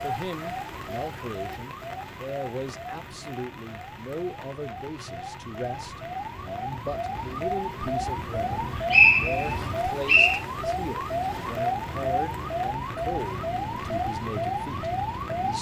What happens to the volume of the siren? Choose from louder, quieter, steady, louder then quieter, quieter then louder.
louder.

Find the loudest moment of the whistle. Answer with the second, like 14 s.
9 s.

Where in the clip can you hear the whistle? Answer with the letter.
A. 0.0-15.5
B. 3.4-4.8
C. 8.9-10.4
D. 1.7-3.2
C.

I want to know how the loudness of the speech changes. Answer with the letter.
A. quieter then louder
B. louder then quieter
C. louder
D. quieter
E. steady
E.